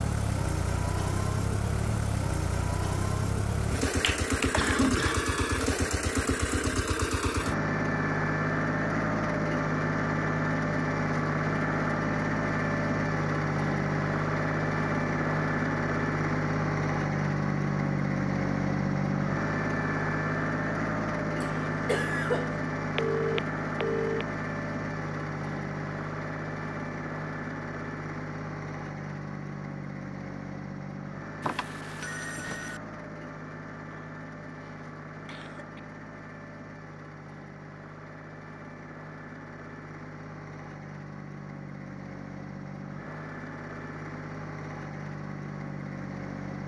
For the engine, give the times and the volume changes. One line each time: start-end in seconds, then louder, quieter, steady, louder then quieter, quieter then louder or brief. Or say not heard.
0.0-46.6 quieter.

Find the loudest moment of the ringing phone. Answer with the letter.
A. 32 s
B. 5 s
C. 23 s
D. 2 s
C.